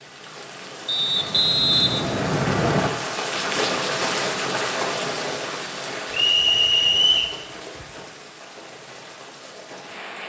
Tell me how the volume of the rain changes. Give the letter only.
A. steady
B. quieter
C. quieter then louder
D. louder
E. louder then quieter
E.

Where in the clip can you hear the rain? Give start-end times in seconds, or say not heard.
0.0-10.2.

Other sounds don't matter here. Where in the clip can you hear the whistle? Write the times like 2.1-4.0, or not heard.
0.8-2.9, 6.1-7.3.